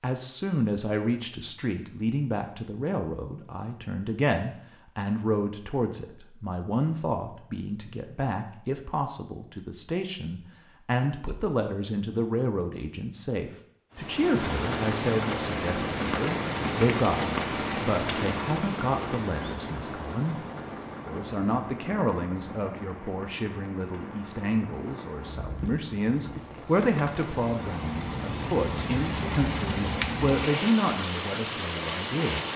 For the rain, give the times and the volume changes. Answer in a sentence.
You can hear the rain from 13.9 to 32.5 s, getting quieter then louder.